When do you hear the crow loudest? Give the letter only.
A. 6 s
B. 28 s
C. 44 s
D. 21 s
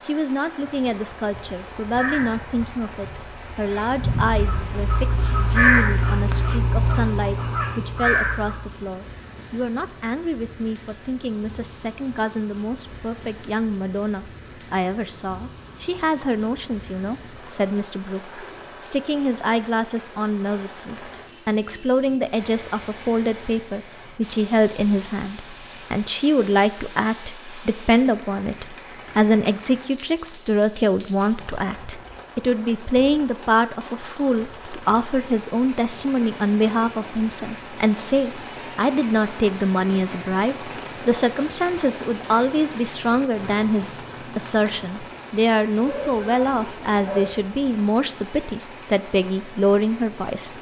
A.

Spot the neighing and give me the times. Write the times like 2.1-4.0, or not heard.
not heard.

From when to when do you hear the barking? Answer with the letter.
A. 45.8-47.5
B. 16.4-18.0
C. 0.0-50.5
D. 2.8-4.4
A.